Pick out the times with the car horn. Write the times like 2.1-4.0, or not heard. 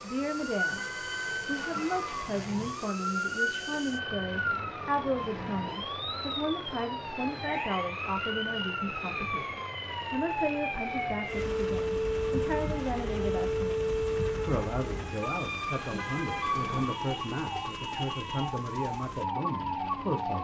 0.7-2.8, 15.9-16.9.